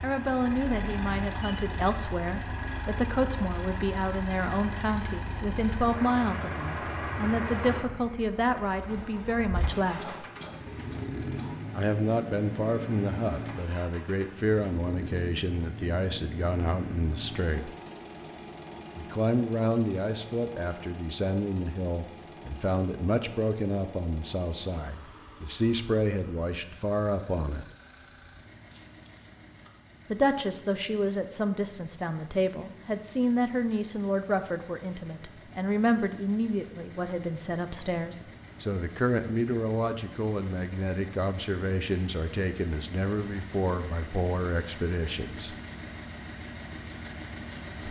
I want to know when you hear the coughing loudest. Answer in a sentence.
The loudest moment of the coughing is at 10 seconds.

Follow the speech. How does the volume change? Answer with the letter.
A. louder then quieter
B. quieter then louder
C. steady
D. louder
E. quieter
C.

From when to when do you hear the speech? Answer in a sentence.
The speech can be heard from 0.0 to 10.2 s, from 11.7 to 17.7 s, from 18.9 to 27.6 s and from 30.1 to 45.5 s.